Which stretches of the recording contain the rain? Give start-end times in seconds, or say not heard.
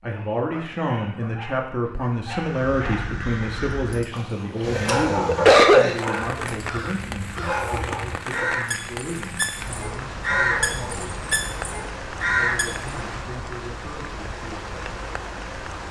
4.6-15.8.